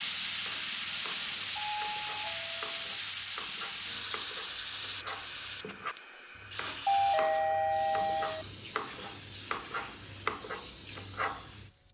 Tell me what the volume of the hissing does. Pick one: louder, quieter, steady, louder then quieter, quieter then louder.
quieter.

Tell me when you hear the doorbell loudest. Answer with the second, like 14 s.
7 s.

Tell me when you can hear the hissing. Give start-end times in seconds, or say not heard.
0.0-11.8.